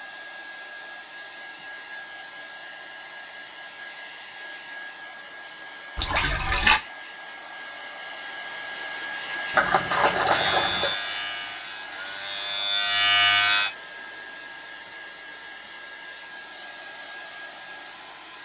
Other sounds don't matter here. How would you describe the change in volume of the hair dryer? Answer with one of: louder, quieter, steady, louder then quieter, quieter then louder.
louder then quieter.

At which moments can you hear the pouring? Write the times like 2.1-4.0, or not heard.
6.0-6.8, 9.5-10.9.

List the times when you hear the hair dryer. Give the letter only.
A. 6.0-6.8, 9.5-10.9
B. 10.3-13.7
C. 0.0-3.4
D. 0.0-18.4
D.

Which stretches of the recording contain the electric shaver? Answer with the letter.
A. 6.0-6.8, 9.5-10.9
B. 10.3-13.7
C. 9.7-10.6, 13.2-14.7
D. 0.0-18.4
B.